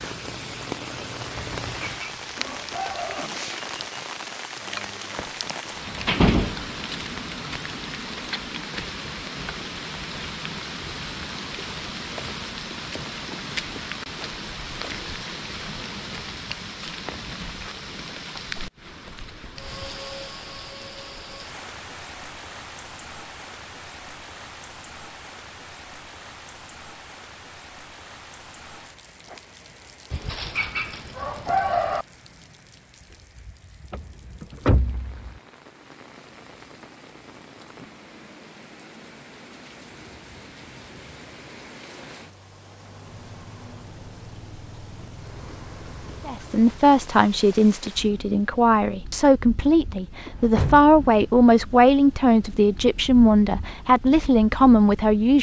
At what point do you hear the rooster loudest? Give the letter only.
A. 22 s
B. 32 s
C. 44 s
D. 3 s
B.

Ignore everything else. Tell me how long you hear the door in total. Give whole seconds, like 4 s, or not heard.
4 s.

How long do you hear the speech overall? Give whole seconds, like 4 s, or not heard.
9 s.